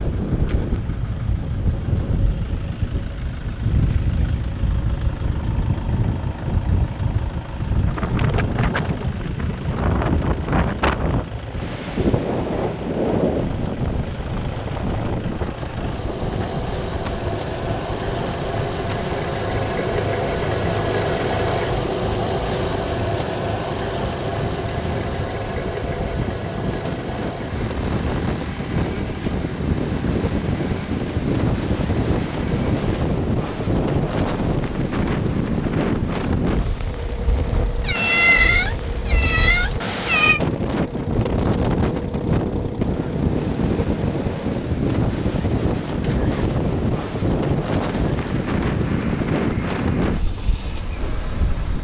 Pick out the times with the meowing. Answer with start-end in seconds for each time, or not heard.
37.8-40.4.